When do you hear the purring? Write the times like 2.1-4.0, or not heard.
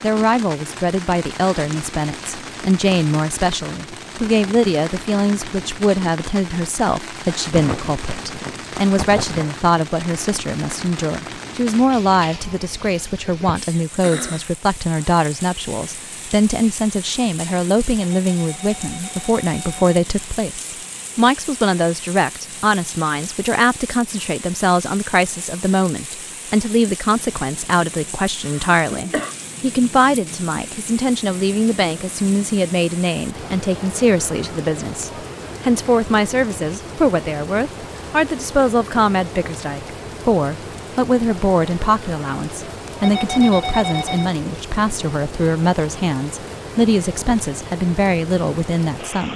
not heard.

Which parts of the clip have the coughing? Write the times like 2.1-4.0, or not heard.
7.5-9.6, 28.4-29.4.